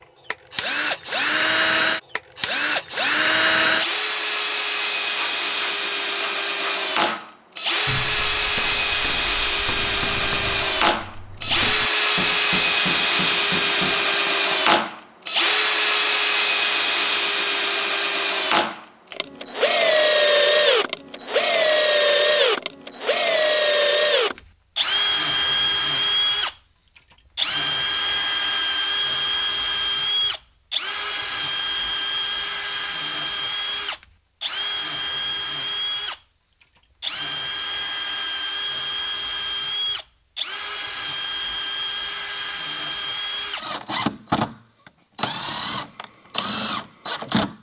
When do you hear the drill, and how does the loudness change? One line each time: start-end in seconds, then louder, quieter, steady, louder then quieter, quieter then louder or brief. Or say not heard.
0.3-47.5 quieter.